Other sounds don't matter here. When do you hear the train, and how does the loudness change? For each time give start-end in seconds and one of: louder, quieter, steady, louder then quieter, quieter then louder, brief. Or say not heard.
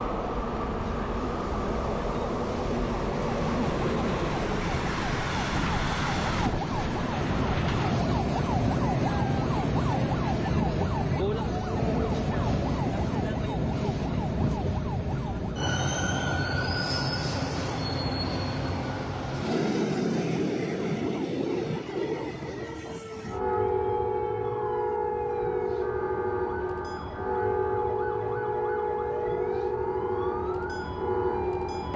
0.0-31.9 steady.